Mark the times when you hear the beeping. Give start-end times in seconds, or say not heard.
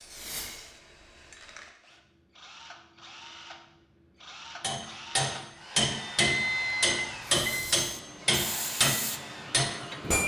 6.2-7.8.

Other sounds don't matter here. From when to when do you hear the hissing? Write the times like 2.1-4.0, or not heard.
0.0-1.8, 7.4-10.2.